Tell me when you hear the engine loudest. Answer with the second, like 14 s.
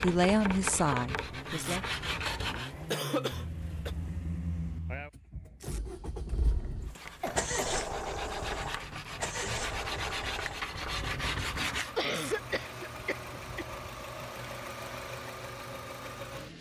8 s.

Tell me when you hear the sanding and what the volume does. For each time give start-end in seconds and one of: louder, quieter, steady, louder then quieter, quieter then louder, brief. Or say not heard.
0.0-2.8 brief
6.8-12.1 louder.